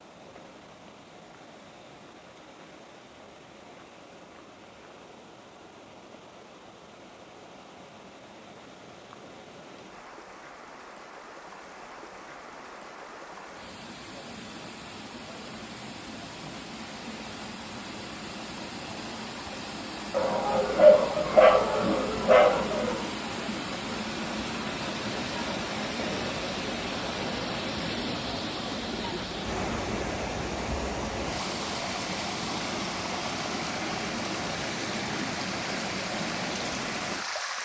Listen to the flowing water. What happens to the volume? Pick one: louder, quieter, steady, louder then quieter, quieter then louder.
louder.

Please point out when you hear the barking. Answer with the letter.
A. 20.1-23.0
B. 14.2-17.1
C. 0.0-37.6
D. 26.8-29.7
A.